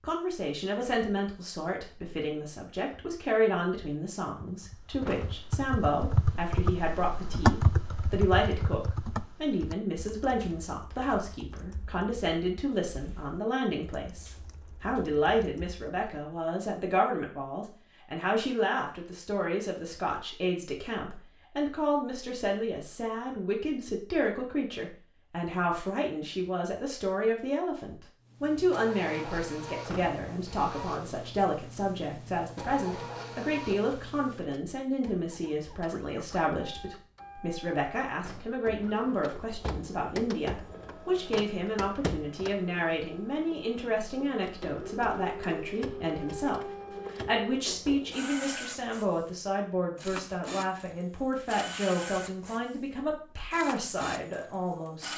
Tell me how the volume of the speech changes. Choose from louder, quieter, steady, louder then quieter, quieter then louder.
steady.